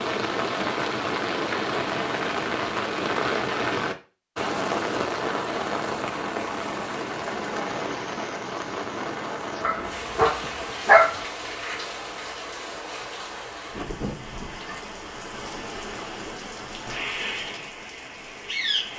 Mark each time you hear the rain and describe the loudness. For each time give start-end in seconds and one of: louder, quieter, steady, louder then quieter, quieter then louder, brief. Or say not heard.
0.0-18.9 quieter.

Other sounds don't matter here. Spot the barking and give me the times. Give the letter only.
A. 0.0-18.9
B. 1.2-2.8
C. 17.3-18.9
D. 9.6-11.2
D.